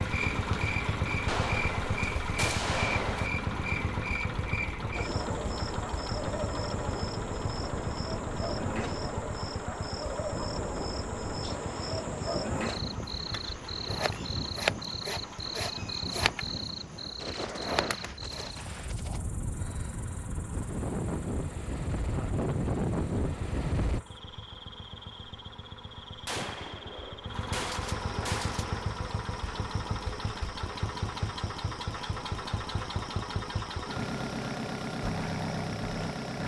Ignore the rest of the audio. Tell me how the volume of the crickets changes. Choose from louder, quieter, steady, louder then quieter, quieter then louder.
quieter.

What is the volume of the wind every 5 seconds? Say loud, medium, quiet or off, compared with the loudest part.
medium, medium, medium, medium, loud, off, off, off.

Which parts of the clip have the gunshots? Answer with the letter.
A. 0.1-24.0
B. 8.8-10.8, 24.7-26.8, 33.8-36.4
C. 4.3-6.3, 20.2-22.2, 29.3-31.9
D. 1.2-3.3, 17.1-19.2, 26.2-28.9
D.